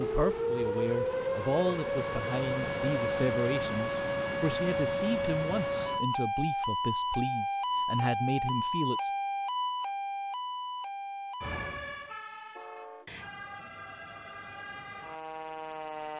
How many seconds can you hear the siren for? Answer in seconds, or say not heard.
16 s.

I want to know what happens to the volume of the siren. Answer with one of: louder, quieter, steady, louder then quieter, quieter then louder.
quieter.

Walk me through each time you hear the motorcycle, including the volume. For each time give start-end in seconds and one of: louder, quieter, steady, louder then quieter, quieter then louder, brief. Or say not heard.
not heard.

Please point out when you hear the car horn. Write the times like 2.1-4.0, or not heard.
12.6-13.1.